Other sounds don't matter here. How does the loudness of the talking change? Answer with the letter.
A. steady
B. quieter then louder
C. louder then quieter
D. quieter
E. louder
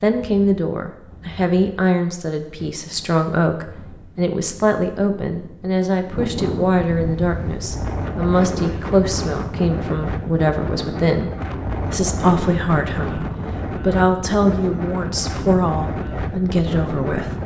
A.